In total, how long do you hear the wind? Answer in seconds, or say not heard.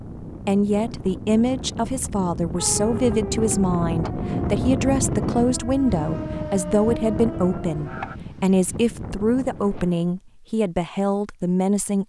10 s.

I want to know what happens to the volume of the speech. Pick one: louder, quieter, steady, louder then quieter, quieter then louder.
steady.